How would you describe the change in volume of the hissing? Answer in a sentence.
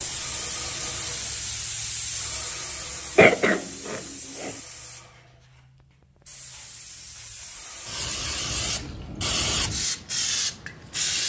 The loudness of the hissing goes down, then up.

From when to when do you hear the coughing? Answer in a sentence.
The coughing can be heard from 3.1 to 4.5 s.